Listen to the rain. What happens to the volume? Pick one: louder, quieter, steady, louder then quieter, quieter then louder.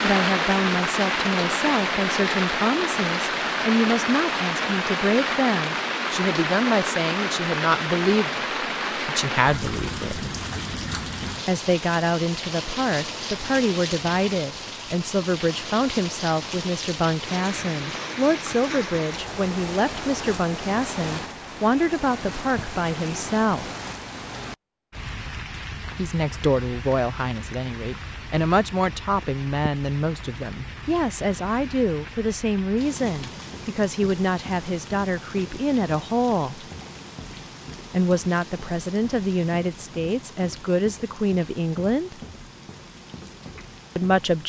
quieter.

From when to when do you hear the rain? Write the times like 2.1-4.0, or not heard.
0.0-44.4.